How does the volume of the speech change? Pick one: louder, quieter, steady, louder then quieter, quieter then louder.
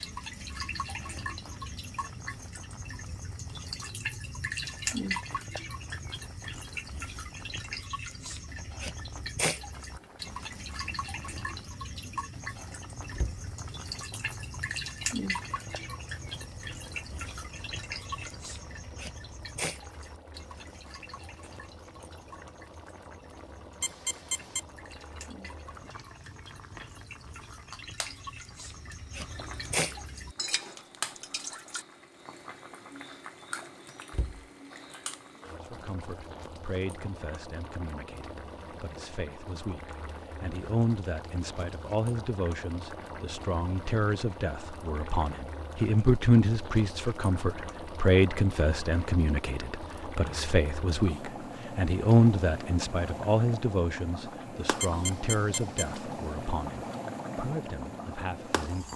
louder then quieter.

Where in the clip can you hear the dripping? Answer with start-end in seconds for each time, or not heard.
0.0-31.9.